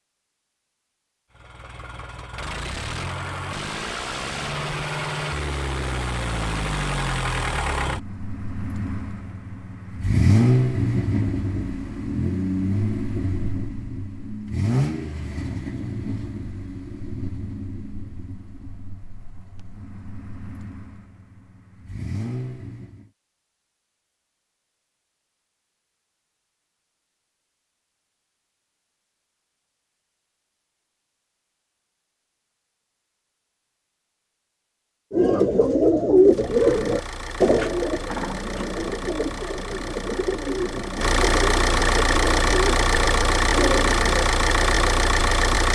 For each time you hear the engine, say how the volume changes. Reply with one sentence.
You can hear the engine from 1.4 to 23.1 s, getting louder then quieter; and from 36.2 to 45.6 s, getting louder.